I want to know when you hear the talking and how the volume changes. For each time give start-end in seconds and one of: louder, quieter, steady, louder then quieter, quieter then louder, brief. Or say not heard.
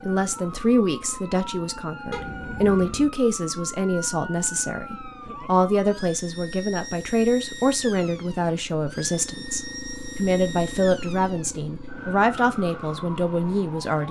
0.0-14.0 steady.